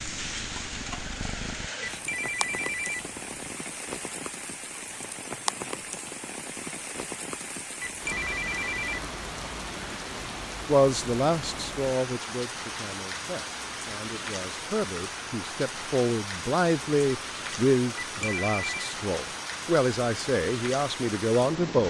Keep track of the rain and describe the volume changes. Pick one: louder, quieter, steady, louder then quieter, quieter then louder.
steady.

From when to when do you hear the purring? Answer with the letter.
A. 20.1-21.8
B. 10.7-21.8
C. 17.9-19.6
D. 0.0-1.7
D.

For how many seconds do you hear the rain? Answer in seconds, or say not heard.
22 s.